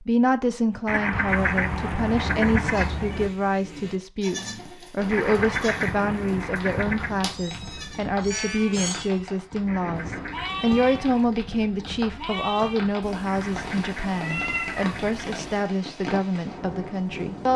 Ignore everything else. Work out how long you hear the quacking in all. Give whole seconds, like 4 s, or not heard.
8 s.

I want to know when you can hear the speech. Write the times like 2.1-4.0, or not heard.
0.0-17.5.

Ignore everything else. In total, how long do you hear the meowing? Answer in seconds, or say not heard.
7 s.